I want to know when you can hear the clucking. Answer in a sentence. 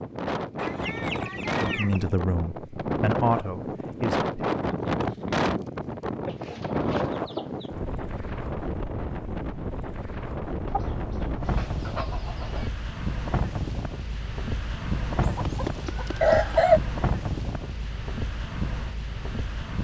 The clucking can be heard from 0.6 to 2.1 s, from 6.2 to 7.8 s, from 10.7 to 12.7 s and from 15.2 to 16.8 s.